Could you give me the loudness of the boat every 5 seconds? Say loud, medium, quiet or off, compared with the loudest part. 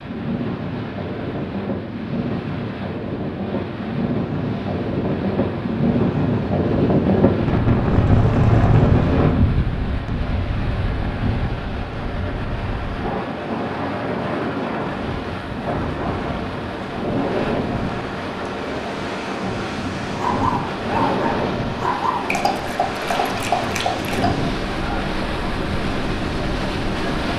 medium, medium, medium, loud, loud, loud.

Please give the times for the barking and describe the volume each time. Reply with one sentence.
You can hear the barking from 20.1 to 24.9 s, at a steady volume.